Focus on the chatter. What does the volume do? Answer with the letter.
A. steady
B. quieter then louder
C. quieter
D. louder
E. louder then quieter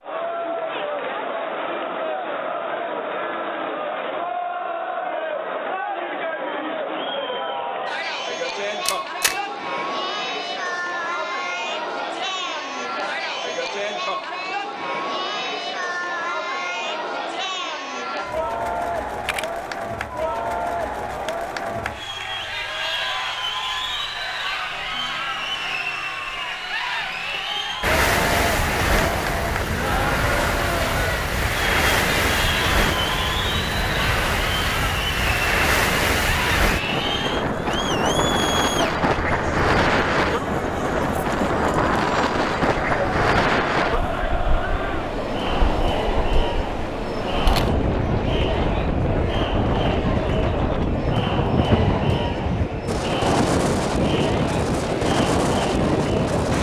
A.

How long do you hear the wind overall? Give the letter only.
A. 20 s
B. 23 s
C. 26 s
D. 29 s
D.